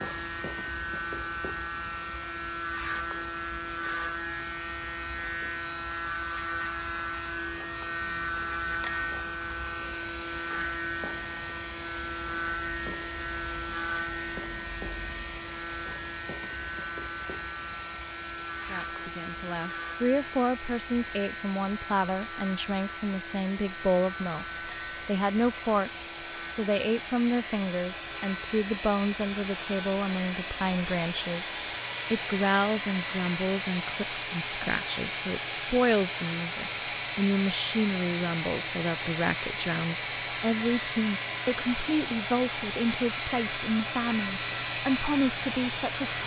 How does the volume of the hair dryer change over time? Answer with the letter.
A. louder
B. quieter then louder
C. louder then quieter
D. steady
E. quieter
A.